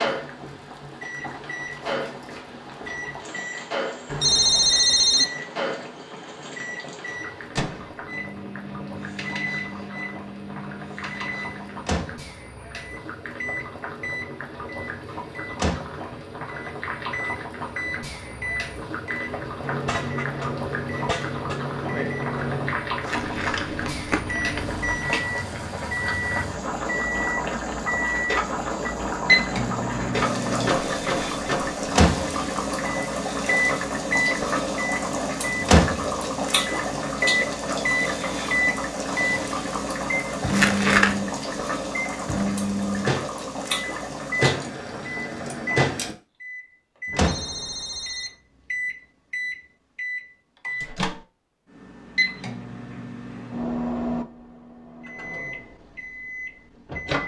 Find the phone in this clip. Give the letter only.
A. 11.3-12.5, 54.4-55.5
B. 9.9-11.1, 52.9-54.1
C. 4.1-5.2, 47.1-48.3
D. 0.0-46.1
C.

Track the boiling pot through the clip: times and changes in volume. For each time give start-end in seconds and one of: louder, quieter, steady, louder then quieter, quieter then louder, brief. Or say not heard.
0.0-46.1 louder.